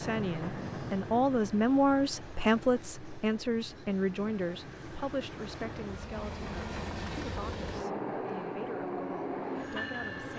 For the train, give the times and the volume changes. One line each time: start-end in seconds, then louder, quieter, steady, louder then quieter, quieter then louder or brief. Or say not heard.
0.0-10.3 quieter then louder.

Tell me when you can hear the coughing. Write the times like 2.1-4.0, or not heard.
not heard.